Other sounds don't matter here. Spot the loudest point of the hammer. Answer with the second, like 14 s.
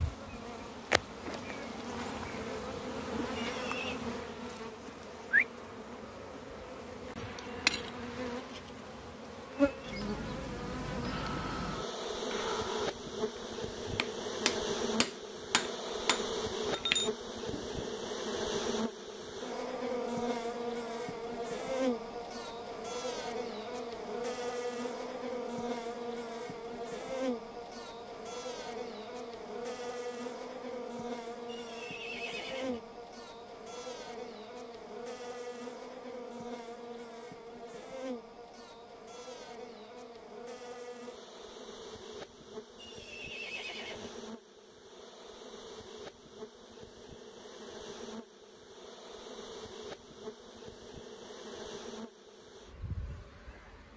17 s.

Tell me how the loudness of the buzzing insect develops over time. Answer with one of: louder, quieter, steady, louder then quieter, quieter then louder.
quieter.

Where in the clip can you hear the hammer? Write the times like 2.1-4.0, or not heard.
10.8-17.9.